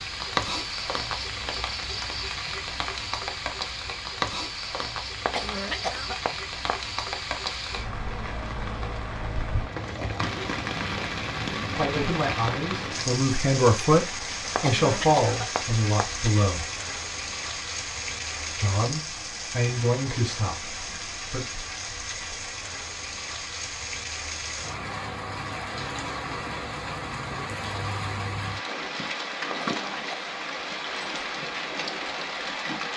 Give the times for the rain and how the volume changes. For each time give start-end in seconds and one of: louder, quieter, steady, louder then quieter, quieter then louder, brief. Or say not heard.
0.0-32.9 steady.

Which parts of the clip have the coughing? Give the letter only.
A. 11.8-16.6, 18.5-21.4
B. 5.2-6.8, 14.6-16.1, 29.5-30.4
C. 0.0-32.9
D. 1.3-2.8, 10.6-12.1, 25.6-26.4
B.